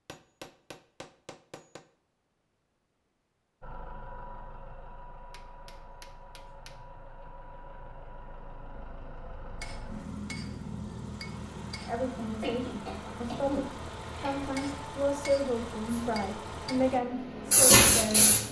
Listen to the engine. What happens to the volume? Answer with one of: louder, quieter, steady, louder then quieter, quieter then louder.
louder.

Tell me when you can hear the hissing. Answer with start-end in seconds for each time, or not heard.
15.9-18.4.